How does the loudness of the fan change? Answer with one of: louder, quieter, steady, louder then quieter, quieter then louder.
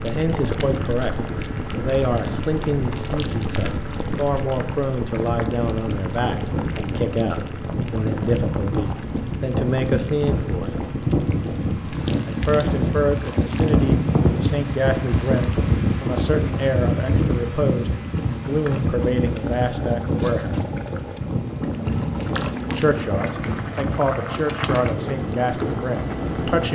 louder then quieter.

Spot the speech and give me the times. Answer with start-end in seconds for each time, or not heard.
0.0-1.1, 1.8-10.8, 12.2-20.6, 22.7-26.7.